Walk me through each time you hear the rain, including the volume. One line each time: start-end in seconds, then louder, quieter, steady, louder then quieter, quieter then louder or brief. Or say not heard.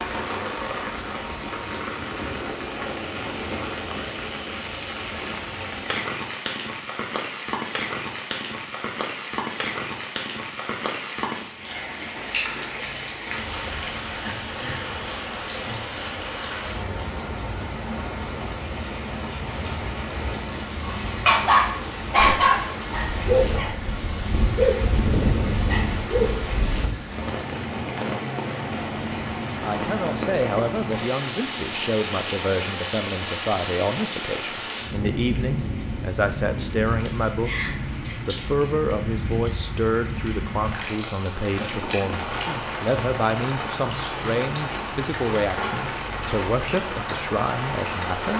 0.0-48.3 steady.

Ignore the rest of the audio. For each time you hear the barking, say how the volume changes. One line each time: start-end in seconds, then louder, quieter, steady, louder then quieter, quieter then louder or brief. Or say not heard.
20.7-26.9 quieter.